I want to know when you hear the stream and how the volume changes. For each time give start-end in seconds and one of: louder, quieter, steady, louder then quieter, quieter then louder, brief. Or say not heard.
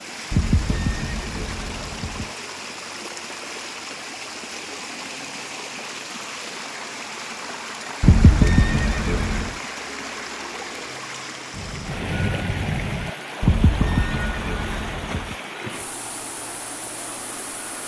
0.0-17.8 steady.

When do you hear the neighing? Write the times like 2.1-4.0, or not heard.
0.3-2.4, 8.0-9.6, 13.4-15.3.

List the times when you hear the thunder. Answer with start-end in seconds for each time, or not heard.
11.5-13.1.